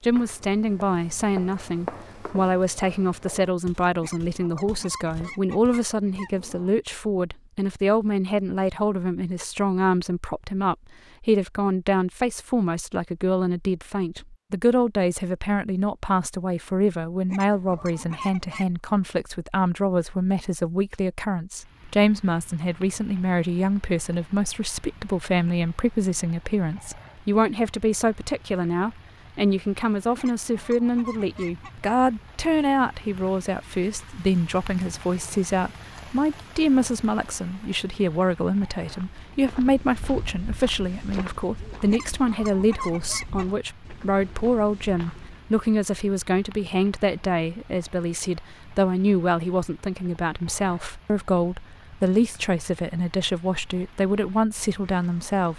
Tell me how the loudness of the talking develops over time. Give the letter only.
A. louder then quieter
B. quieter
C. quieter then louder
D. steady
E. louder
D.